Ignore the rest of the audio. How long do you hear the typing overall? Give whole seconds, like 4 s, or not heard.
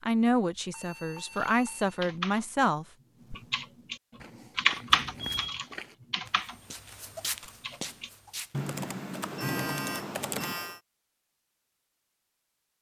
8 s.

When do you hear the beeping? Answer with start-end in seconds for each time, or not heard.
0.7-2.0, 4.9-5.6, 9.3-10.8.